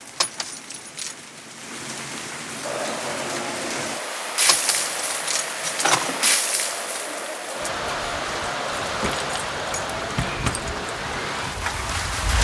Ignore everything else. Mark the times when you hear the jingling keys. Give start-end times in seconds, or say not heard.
0.1-1.1, 4.5-6.3, 8.8-10.7.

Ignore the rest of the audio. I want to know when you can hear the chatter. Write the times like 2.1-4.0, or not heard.
2.6-12.2.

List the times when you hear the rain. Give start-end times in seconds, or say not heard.
0.0-12.3.